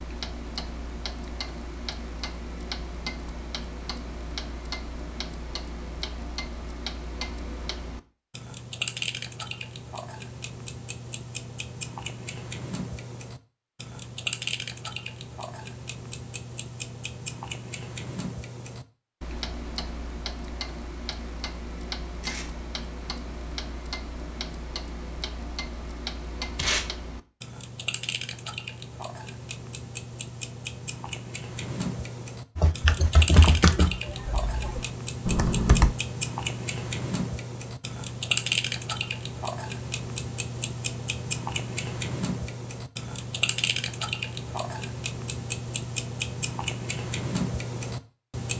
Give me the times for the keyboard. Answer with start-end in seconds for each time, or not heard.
32.5-36.0.